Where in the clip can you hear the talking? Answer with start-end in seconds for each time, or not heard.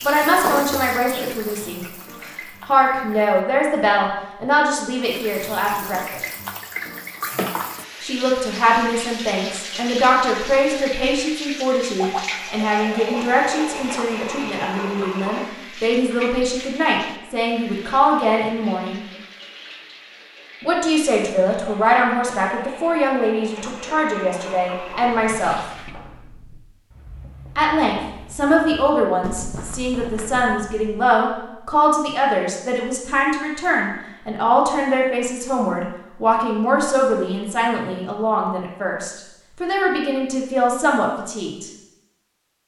0.0-6.2, 8.0-19.1, 20.6-25.6, 27.6-41.7.